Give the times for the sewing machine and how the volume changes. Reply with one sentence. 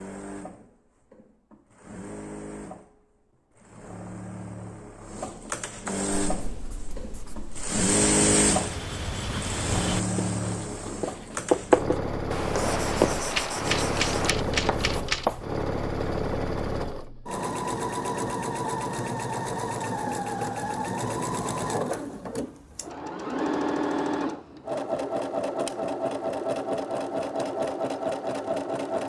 The sewing machine can be heard from 0.0 to 29.0 s, getting louder.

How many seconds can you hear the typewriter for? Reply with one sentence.
You can hear the typewriter for 2 seconds altogether.